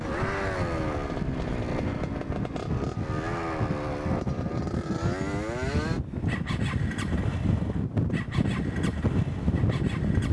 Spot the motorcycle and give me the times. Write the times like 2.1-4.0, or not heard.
0.0-10.2.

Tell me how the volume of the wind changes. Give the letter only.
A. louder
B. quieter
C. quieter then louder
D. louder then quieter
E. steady
A.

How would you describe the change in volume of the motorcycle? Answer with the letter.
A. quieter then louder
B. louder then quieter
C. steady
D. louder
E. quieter
E.